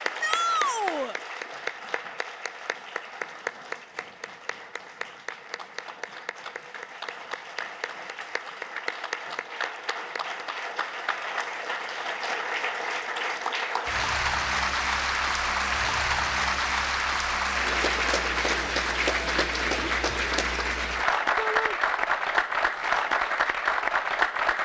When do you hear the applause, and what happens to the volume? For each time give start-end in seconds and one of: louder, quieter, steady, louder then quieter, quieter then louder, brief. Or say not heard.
0.0-24.6 louder.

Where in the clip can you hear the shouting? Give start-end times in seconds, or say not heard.
0.2-1.1, 21.4-21.8.